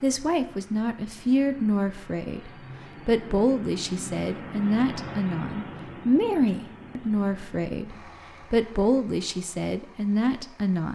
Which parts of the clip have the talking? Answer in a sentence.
The talking can be heard from 0.0 to 10.9 s.